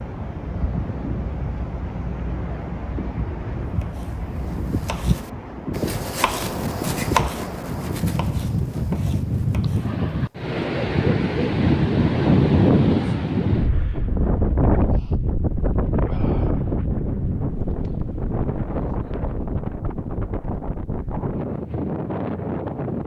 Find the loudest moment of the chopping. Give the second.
7 s.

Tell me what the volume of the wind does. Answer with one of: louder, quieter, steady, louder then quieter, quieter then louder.
louder then quieter.